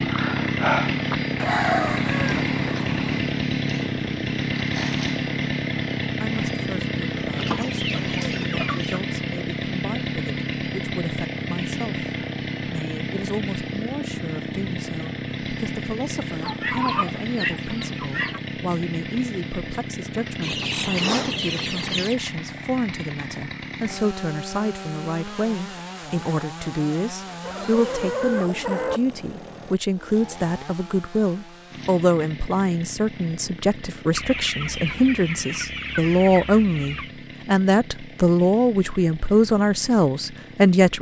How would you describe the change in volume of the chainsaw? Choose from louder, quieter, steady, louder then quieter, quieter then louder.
quieter.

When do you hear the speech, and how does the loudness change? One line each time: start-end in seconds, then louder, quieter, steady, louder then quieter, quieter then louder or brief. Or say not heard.
6.2-40.9 louder.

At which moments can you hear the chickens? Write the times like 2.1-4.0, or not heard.
1.4-3.3, 7.3-9.0, 16.4-18.4, 20.4-22.1, 27.4-29.0, 34.1-37.1.